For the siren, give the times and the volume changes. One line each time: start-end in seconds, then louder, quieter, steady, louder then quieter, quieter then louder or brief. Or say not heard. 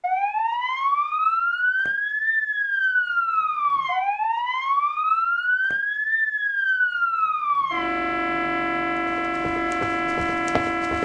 0.0-11.0 steady.